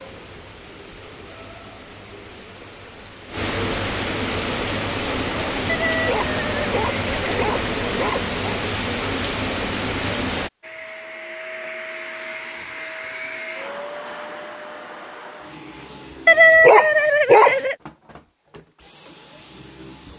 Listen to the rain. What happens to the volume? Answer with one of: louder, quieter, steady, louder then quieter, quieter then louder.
louder.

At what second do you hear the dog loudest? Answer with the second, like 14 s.
17 s.